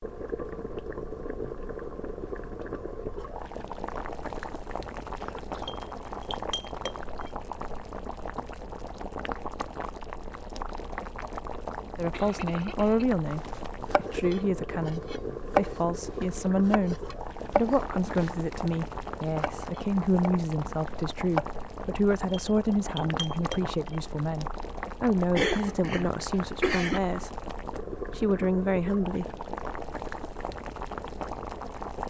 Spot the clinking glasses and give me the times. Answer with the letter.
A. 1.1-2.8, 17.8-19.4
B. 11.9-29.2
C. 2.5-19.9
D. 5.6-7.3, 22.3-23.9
D.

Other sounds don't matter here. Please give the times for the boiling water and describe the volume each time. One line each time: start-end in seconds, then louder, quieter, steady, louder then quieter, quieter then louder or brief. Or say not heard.
0.0-32.0 steady.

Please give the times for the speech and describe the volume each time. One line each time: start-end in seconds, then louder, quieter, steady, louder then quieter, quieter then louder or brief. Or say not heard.
11.9-29.2 steady.